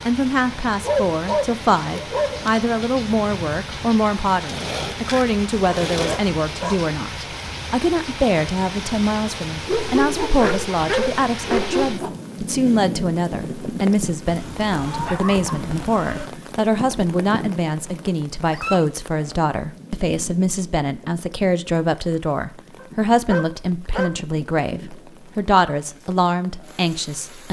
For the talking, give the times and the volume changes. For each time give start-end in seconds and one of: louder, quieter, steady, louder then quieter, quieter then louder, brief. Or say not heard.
0.1-27.4 steady.